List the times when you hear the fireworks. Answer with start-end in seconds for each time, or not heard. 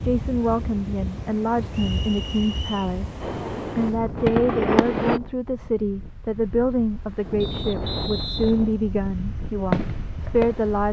3.2-5.2, 7.8-10.8.